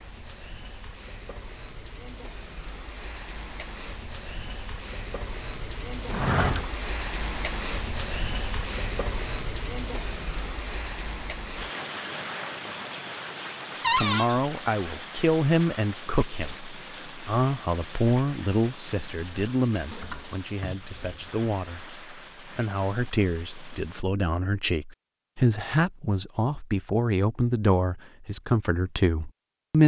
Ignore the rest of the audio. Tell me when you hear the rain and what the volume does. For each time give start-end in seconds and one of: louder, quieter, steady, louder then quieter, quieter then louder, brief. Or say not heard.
0.0-24.1 louder then quieter.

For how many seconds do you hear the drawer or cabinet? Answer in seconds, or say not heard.
3 s.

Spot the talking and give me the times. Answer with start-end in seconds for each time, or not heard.
13.9-29.8.